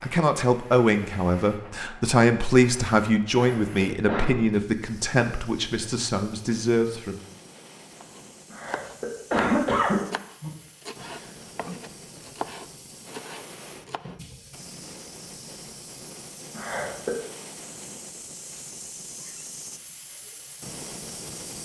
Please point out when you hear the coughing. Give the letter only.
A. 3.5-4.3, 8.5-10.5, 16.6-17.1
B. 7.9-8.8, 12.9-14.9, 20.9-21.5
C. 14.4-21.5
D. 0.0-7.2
A.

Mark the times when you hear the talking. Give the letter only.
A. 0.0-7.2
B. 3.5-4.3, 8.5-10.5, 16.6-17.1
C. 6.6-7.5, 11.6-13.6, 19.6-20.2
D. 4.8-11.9
A.